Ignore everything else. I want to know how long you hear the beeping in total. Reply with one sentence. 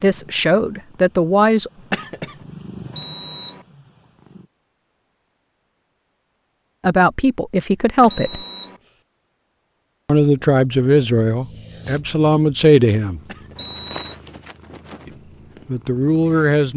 The beeping can be heard for 2 seconds in total.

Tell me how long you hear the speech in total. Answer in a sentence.
You can hear the speech for 8 seconds altogether.